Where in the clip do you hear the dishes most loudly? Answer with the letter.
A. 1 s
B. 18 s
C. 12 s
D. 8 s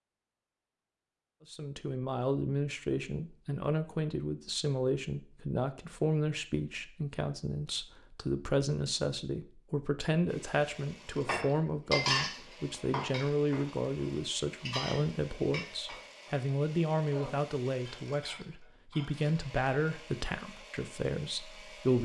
C.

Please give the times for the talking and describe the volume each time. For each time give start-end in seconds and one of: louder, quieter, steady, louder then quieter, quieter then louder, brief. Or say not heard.
1.5-22.0 steady.